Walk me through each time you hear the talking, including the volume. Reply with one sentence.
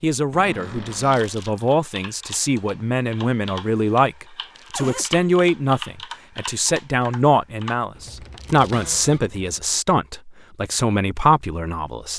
You can hear the talking from 0.0 to 12.1 s, at a steady volume.